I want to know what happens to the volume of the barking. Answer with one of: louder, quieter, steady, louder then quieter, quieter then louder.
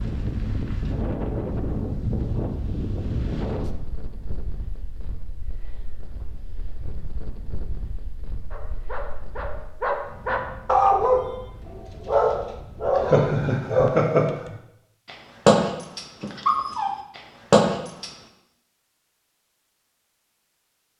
louder.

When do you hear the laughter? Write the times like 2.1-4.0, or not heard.
12.9-14.2.